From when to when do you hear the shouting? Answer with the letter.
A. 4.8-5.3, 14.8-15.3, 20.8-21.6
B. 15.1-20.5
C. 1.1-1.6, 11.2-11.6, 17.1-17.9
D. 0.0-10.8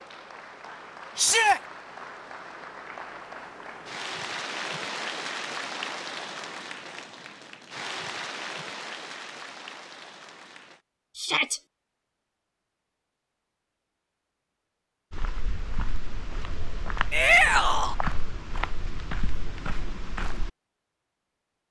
C.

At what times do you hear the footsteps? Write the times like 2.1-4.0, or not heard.
15.1-20.5.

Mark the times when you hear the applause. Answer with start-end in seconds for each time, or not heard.
0.0-10.8.